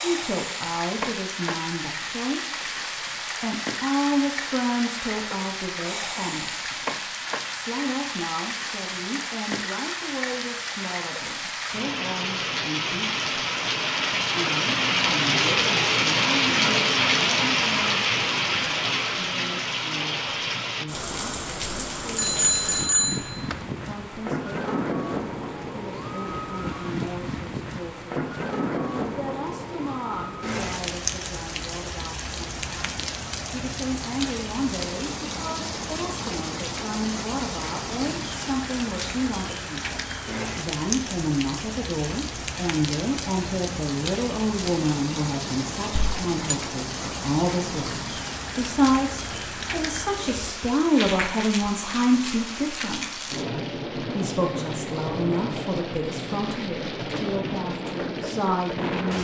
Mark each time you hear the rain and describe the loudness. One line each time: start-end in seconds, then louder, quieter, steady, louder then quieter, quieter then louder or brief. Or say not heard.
0.0-59.1 louder then quieter.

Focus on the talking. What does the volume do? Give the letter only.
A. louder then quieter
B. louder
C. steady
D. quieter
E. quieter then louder
E.